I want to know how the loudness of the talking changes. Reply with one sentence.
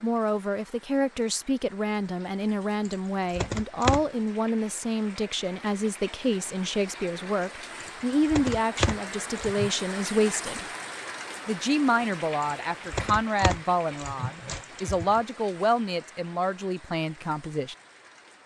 The volume of the talking stays about the same.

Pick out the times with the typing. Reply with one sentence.
You can hear the typing from 2.9 to 4.0 s, from 7.8 to 9.7 s and from 12.4 to 15.2 s.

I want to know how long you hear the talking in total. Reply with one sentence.
You can hear the talking for 17 seconds altogether.